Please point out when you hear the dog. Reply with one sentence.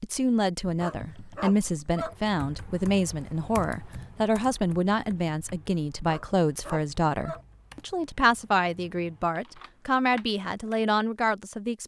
You can hear the dog from 0.8 to 2.1 s and from 6.0 to 7.5 s.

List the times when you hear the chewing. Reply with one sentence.
The chewing can't be heard in this clip.